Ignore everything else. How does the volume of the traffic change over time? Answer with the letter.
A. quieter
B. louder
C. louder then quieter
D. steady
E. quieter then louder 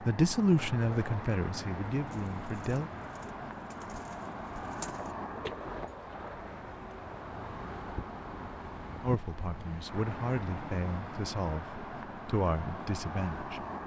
D.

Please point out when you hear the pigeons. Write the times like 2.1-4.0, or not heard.
2.0-5.5.